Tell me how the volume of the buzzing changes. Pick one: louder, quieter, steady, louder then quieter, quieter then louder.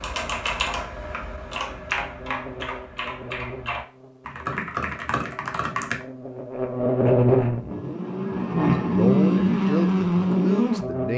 louder.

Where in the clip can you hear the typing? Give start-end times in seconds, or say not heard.
0.0-6.0.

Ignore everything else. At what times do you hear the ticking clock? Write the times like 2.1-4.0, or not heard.
not heard.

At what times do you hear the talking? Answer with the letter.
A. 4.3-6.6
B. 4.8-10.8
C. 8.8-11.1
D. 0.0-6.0
C.